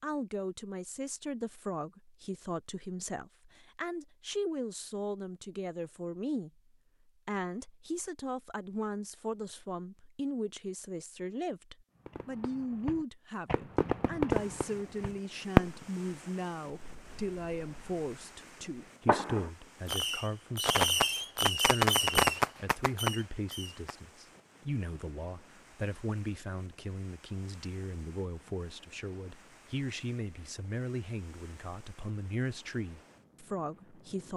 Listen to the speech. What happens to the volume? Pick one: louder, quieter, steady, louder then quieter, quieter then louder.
steady.